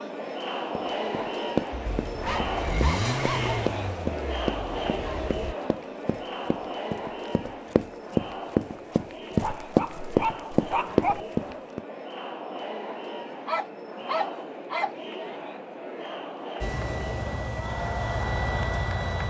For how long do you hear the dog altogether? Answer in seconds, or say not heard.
5 s.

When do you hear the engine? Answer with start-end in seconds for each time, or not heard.
1.7-5.5, 16.6-19.2.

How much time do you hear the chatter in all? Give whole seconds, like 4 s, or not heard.
19 s.